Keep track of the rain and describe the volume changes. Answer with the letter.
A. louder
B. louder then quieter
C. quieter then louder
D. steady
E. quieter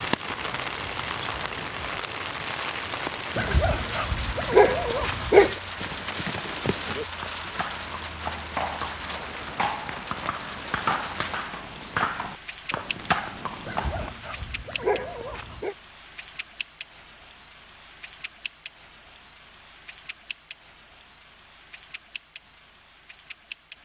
E.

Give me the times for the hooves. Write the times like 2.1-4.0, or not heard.
5.8-14.1.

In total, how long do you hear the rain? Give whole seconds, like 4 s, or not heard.
24 s.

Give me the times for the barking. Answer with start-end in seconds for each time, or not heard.
3.4-5.5, 13.7-15.8.